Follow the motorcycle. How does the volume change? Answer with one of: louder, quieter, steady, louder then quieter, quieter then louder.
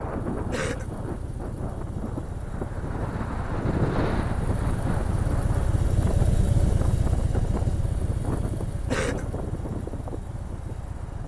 louder then quieter.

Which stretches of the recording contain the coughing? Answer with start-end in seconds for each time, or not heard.
0.5-0.9, 8.8-9.2.